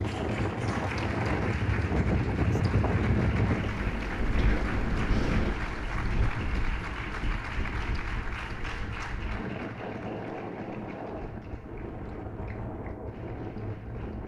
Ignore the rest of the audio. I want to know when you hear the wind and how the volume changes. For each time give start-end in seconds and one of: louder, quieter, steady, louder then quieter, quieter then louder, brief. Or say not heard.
0.0-14.2 quieter.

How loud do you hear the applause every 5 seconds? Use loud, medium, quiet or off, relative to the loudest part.
loud, loud, quiet.